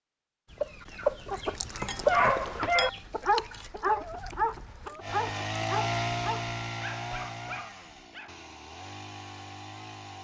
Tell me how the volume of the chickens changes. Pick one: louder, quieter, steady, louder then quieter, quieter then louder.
quieter.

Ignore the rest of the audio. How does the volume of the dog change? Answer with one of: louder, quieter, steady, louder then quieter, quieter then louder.
quieter.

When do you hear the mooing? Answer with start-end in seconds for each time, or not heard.
not heard.